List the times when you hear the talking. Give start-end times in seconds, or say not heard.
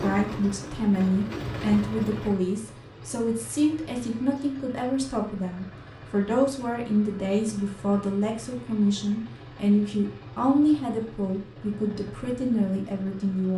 0.0-13.5.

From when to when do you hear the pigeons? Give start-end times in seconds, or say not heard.
not heard.